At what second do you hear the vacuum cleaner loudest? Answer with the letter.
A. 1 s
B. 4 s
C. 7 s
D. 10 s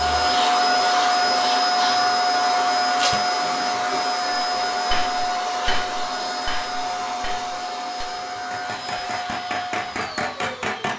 A.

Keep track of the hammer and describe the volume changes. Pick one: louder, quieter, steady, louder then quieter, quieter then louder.
quieter then louder.